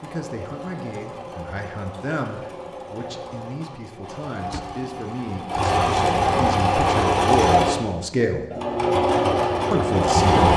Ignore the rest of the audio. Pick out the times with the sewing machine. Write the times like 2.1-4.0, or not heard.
0.0-10.5.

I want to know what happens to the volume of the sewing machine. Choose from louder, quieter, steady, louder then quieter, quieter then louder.
louder.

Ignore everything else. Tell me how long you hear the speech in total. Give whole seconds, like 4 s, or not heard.
9 s.